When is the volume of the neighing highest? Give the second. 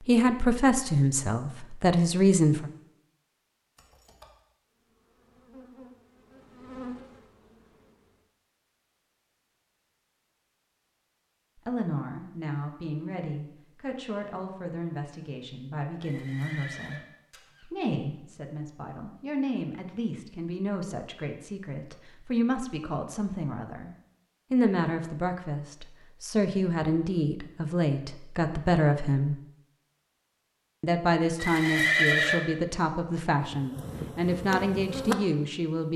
32 s.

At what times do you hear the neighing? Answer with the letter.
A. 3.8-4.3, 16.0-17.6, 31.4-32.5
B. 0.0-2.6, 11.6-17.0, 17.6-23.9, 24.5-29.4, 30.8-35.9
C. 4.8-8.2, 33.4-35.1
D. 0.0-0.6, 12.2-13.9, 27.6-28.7
A.